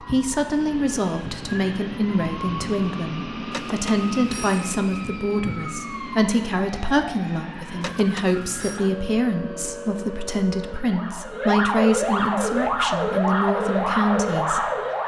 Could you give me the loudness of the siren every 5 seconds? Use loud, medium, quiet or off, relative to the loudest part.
quiet, quiet, loud.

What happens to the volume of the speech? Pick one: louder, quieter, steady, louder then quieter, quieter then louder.
steady.